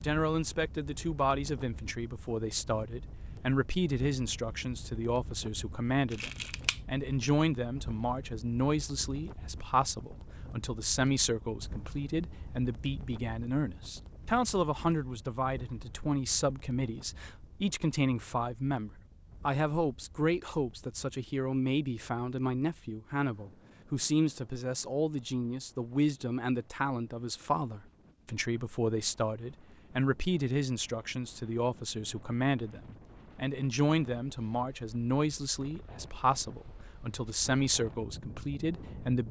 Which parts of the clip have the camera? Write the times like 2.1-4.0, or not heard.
6.1-6.8.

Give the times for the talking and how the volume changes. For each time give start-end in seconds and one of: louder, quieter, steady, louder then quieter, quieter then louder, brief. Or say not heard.
0.0-39.2 steady.